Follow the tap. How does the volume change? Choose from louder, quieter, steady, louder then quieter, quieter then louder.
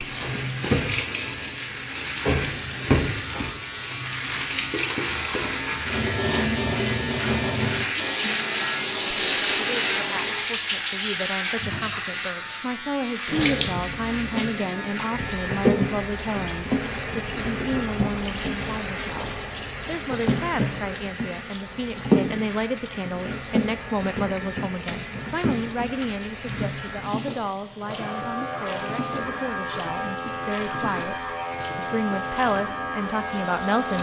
quieter.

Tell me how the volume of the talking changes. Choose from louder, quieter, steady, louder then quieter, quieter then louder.
steady.